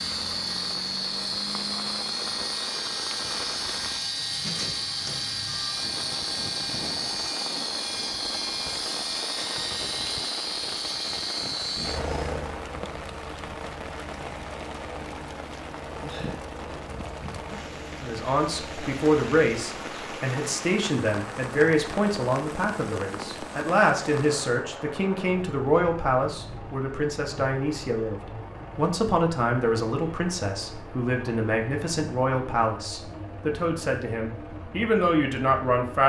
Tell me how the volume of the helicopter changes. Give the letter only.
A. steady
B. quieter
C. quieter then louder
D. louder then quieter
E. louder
B.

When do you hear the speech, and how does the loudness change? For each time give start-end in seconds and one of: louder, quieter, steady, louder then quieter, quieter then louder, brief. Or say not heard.
18.0-36.0 steady.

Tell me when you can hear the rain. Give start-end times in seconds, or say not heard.
0.0-24.4.